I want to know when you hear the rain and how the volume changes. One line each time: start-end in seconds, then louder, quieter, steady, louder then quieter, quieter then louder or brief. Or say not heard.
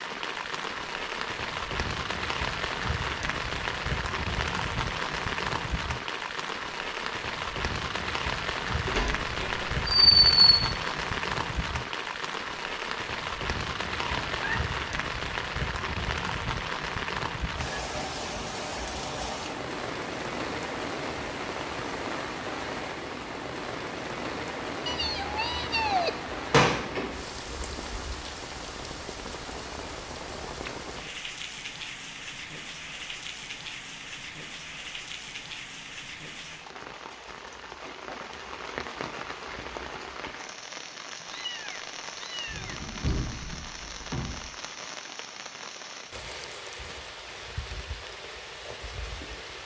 0.0-49.6 quieter.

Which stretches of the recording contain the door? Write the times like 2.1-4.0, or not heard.
8.8-10.3, 26.5-28.0, 42.5-44.5.